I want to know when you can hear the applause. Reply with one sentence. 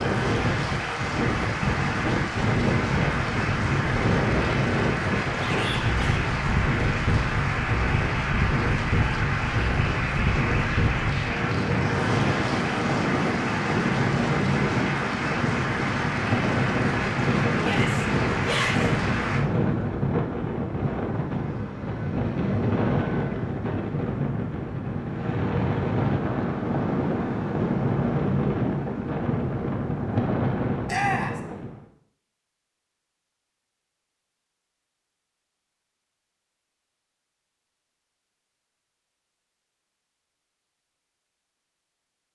The applause can be heard from 0.0 to 19.4 s.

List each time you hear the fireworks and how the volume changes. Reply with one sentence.
You can't hear the fireworks here.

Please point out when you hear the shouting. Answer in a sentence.
You can hear the shouting from 5.3 to 6.2 s, from 17.6 to 18.9 s and from 30.9 to 31.4 s.